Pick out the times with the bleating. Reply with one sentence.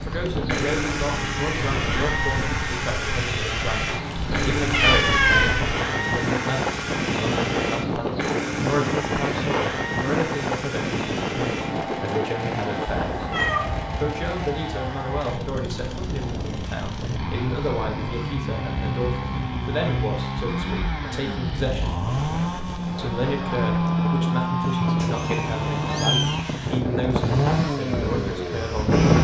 You can't hear the bleating here.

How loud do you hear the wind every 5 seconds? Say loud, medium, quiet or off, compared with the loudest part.
medium, loud, loud, medium, medium, loud.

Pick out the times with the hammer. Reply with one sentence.
The hammer can't be heard in this clip.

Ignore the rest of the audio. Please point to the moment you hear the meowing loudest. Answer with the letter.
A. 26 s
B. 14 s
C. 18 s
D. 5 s
D.